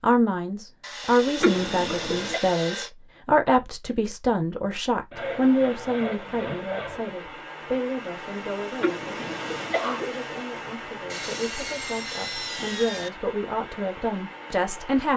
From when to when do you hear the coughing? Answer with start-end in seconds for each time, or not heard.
1.4-2.4, 8.8-10.1.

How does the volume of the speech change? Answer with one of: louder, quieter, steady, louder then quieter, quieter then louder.
quieter then louder.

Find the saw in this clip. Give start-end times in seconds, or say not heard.
0.8-2.9, 5.1-7.0, 11.1-13.1.